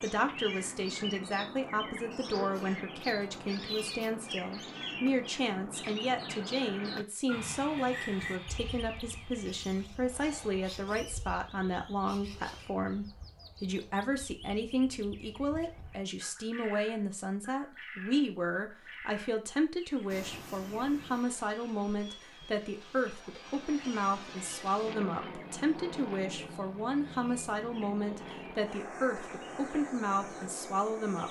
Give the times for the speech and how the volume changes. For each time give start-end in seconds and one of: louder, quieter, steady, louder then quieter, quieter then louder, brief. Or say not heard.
0.0-31.2 steady.